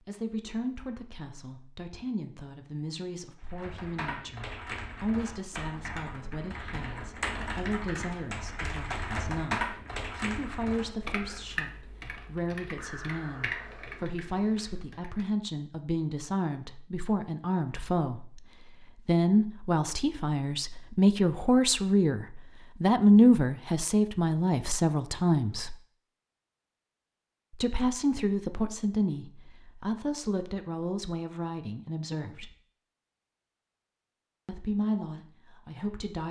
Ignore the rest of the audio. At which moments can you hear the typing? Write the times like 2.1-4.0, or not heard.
3.4-15.2.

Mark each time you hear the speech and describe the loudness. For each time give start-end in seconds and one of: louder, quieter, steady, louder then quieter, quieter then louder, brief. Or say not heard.
0.1-25.8 louder
27.5-32.5 quieter
34.5-36.2 brief.